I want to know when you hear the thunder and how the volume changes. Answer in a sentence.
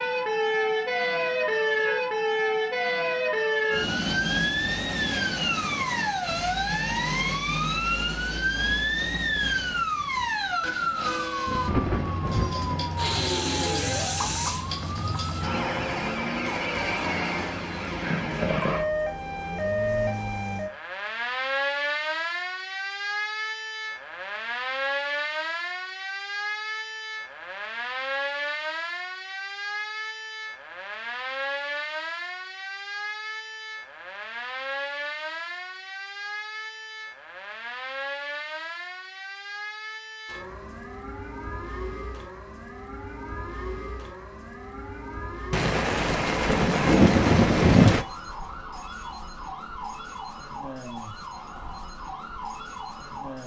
The thunder can be heard from 8.8 to 12.8 s, getting louder; and briefly from 45.5 to 48.0 s.